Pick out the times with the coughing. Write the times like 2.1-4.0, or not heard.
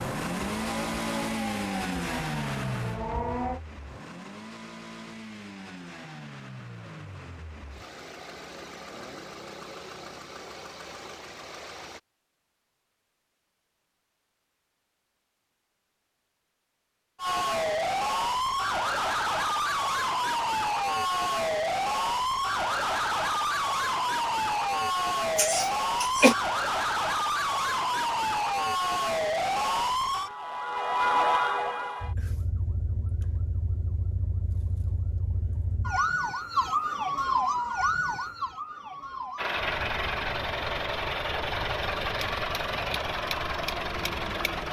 25.4-26.4.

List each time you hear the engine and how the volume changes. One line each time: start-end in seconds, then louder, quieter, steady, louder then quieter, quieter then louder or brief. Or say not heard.
0.0-12.0 quieter
39.4-44.6 steady.